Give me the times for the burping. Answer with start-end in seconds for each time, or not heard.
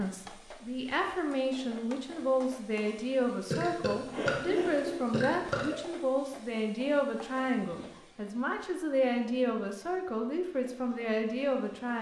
3.5-5.8.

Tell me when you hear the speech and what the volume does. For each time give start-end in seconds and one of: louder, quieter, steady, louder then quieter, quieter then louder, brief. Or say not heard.
0.0-11.9 steady.